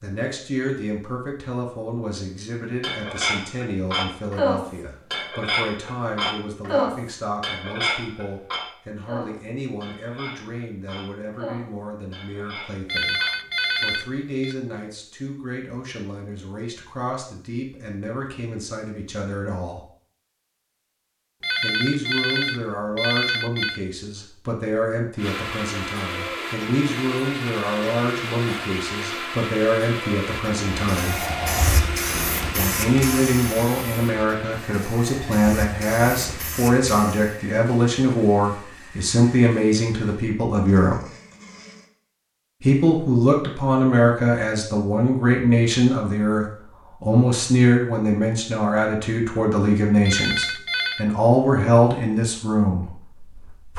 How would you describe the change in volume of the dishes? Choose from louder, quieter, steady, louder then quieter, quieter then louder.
quieter.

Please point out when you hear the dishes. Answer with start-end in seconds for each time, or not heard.
2.8-13.3.